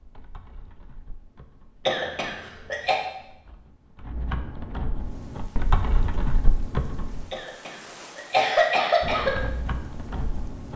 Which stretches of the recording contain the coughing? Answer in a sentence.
You can hear the coughing from 1.9 to 3.0 s and from 7.3 to 9.3 s.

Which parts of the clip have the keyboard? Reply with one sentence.
You can hear the keyboard from 0.0 to 7.3 s and from 9.0 to 10.7 s.